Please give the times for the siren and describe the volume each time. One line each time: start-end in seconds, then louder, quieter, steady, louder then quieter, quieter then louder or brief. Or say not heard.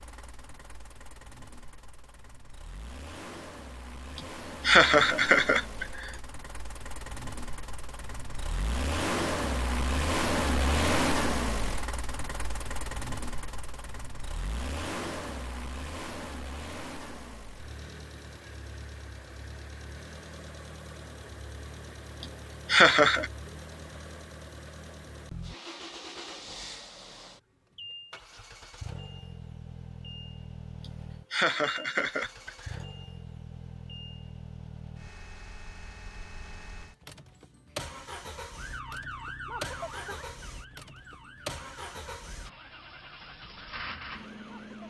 38.5-44.8 quieter.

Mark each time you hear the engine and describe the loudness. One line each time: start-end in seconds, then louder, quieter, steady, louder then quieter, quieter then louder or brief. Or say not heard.
0.0-44.8 louder then quieter.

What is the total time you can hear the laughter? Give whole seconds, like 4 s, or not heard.
5 s.